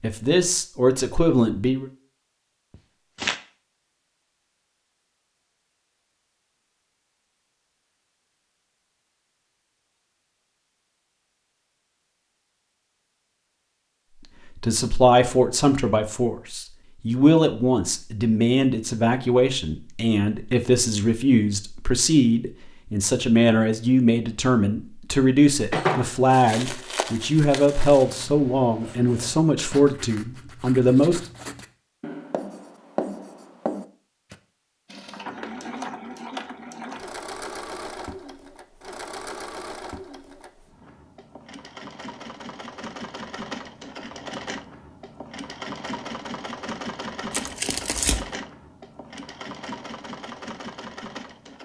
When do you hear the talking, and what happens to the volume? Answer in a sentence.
The talking can be heard briefly from 0.0 to 1.9 s; and from 14.6 to 31.2 s, at a steady volume.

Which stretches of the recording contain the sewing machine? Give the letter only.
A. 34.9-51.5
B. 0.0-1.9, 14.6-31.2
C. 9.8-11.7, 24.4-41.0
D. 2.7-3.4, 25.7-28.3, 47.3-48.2
A.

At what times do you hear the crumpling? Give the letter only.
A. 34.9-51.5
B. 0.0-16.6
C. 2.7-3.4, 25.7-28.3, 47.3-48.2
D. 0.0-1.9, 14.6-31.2
C.